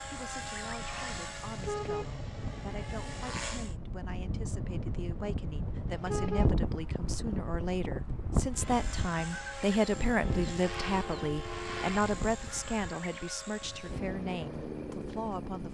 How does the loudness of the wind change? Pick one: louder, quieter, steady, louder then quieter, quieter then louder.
louder then quieter.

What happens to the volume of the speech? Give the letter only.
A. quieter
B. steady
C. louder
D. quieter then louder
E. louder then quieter
E.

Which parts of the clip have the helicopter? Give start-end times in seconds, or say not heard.
0.0-3.8, 8.5-15.7.